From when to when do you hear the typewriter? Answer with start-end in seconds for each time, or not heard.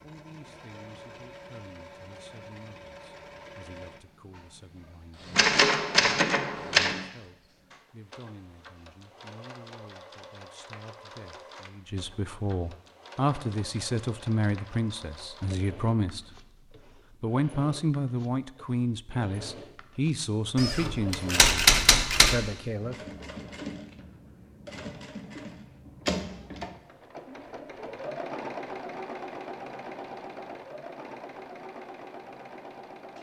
5.3-7.0, 20.6-22.4.